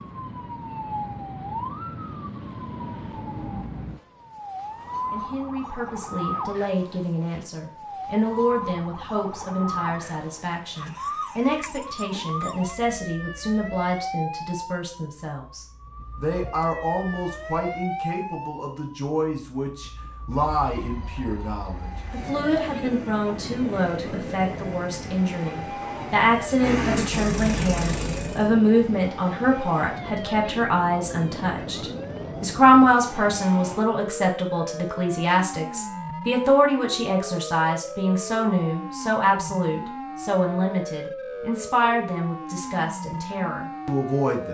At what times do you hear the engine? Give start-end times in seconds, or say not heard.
21.6-28.4.